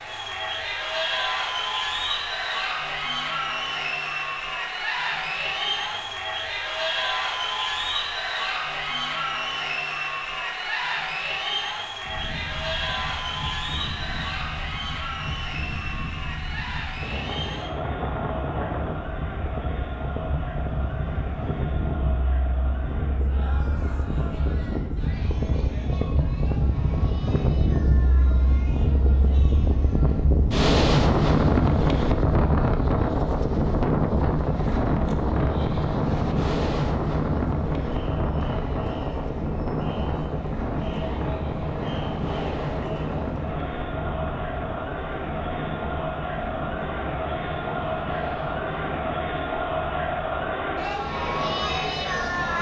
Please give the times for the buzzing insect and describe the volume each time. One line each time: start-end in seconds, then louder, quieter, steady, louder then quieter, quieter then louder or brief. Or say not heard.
not heard.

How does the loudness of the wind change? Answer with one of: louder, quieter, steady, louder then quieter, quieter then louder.
louder then quieter.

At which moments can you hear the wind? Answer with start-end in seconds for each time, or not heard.
12.0-52.5.